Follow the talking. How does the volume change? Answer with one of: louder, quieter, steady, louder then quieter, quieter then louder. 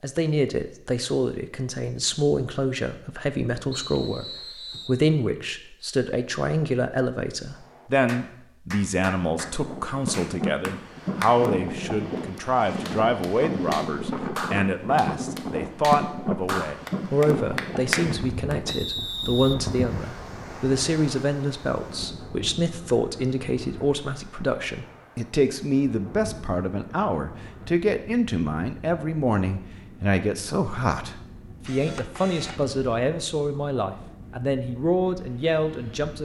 steady.